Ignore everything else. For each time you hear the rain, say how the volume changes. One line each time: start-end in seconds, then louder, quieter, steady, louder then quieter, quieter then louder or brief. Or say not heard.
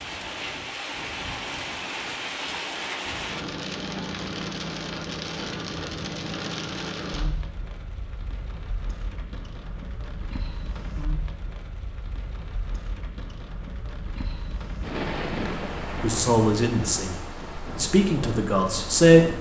0.0-19.3 quieter then louder.